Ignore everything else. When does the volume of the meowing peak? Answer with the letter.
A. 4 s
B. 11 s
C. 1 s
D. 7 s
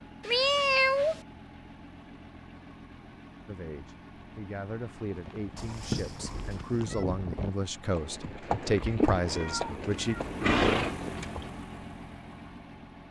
C.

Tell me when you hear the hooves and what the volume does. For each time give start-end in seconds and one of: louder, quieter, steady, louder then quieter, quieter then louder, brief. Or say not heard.
5.2-11.5 louder.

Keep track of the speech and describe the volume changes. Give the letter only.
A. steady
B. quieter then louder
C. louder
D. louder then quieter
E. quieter
C.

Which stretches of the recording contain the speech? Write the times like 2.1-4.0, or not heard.
3.5-10.2.